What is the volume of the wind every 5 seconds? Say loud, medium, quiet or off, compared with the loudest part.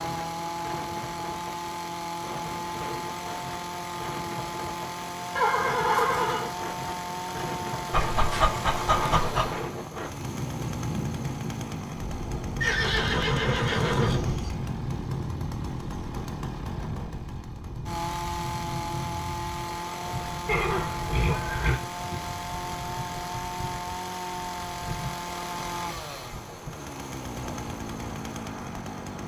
medium, loud, loud, loud, medium, medium.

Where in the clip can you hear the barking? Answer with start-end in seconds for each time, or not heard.
7.9-9.7.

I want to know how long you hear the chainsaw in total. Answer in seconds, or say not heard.
29 s.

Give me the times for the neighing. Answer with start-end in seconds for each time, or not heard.
5.3-6.5, 12.6-14.5, 20.4-21.8.